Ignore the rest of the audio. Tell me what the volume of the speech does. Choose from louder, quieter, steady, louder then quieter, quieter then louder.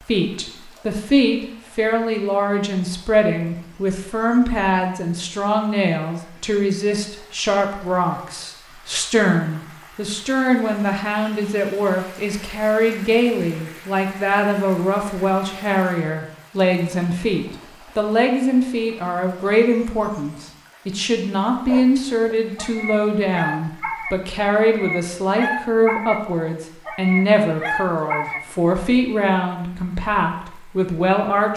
steady.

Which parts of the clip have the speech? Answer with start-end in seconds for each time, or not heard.
0.1-31.5.